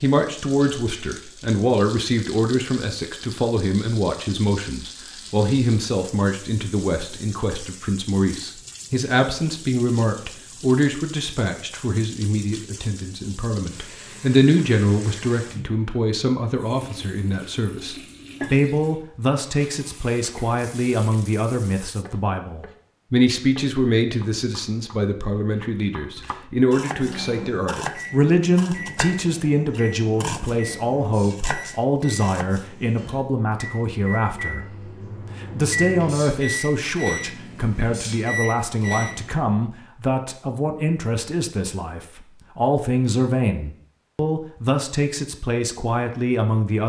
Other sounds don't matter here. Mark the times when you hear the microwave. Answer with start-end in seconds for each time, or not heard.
26.9-39.4.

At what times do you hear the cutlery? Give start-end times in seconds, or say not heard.
not heard.